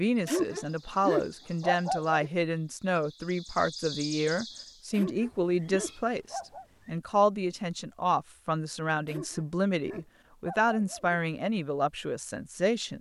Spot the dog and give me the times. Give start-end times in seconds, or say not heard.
0.2-2.3, 4.9-6.7, 9.1-11.2.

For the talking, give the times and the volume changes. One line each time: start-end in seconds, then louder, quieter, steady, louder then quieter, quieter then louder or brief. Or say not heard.
0.0-12.9 steady.